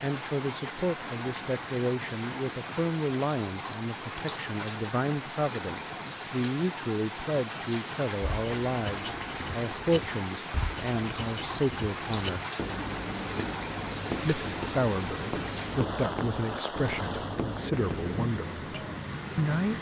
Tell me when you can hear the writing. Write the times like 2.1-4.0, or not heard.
8.2-18.2.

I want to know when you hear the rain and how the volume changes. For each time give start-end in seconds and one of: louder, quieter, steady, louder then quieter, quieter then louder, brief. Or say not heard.
0.0-19.7 steady.